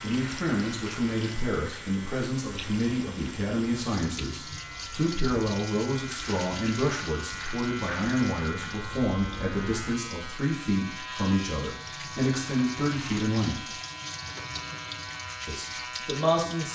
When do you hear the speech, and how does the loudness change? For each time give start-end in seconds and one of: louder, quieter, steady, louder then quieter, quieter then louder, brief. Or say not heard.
0.0-13.6 steady
15.4-16.6 brief.